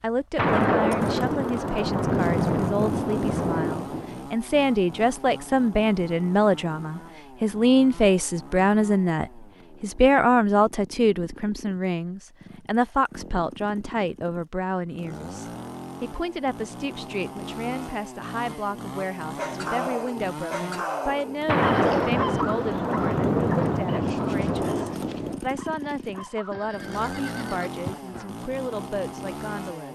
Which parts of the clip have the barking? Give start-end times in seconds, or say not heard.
19.4-26.6.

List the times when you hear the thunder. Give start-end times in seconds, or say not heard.
0.3-4.2, 21.4-25.4.